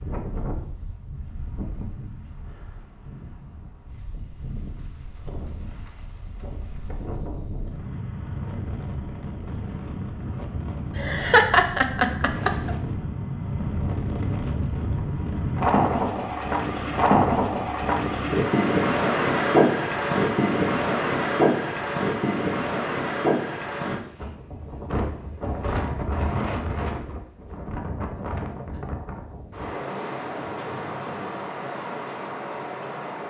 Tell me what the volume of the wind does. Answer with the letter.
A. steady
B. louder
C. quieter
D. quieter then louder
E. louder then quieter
E.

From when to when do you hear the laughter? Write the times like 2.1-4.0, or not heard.
10.9-12.8.